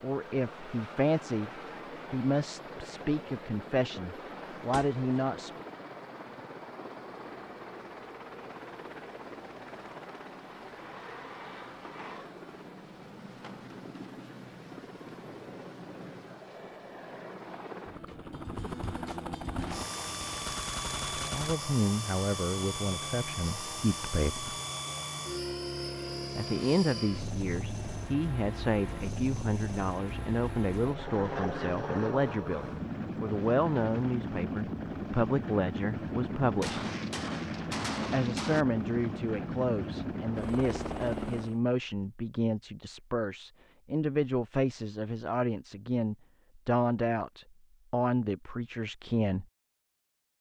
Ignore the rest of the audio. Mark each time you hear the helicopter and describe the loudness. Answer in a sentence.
You can hear the helicopter from 0.0 to 41.6 s, getting louder.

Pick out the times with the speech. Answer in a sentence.
The speech can be heard from 0.0 to 1.5 s, from 2.1 to 5.5 s, from 21.3 to 24.6 s, from 26.4 to 36.9 s and from 38.1 to 49.5 s.